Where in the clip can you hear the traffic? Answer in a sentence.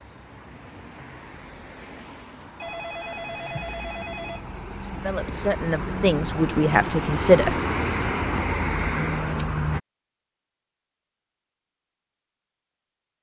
The traffic can be heard from 0.0 to 9.8 s.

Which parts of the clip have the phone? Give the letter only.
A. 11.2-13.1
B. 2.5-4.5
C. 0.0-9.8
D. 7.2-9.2
B.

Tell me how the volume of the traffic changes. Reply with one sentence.
The loudness of the traffic goes up.